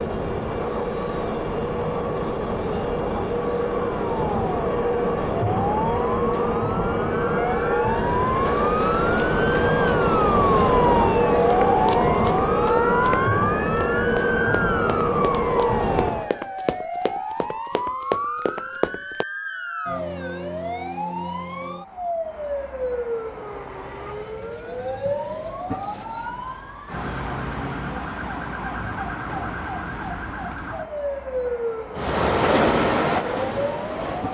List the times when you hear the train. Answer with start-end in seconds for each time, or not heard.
0.0-16.3, 31.9-34.2.